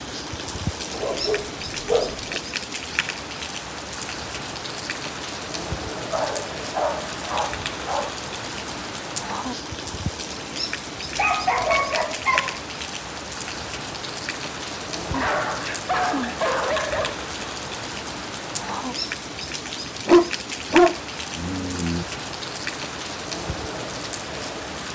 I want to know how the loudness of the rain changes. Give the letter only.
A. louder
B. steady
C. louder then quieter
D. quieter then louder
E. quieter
B.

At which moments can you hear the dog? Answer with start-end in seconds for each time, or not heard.
0.9-2.4, 6.1-8.1, 11.2-12.6, 15.1-17.1, 20.1-22.1.